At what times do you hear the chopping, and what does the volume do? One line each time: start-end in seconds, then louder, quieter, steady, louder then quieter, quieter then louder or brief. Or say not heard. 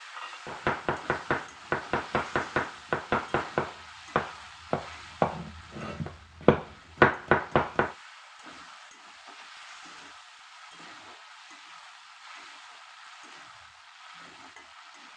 0.5-8.0 louder.